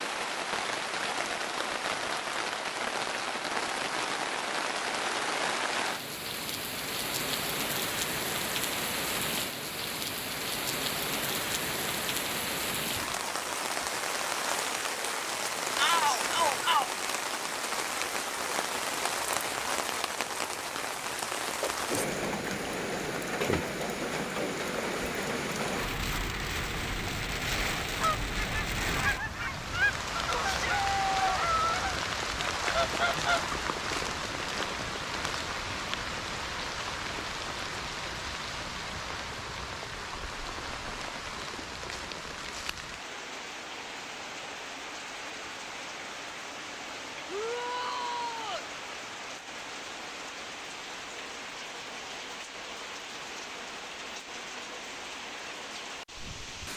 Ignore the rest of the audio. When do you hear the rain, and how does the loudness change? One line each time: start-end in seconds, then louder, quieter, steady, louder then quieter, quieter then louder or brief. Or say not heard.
0.0-56.7 quieter.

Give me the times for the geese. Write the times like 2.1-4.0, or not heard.
28.0-33.7.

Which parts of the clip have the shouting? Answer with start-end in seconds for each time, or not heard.
15.8-16.9, 30.4-31.4, 47.2-48.7.